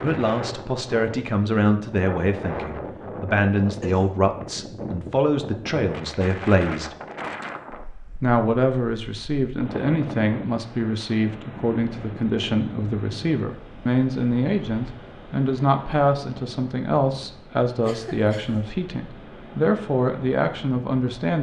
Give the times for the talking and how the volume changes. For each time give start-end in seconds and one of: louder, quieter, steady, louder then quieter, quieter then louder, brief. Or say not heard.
0.0-7.0 steady
8.2-21.3 steady.